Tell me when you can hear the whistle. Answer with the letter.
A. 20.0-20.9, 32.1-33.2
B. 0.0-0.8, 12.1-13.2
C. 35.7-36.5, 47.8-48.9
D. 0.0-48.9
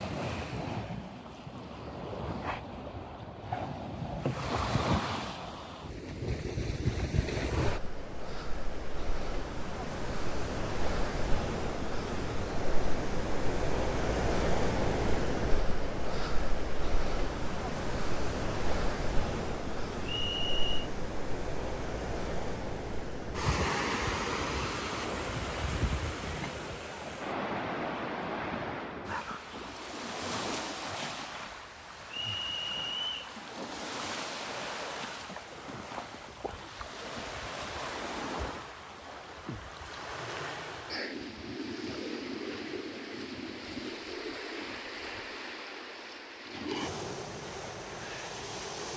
A.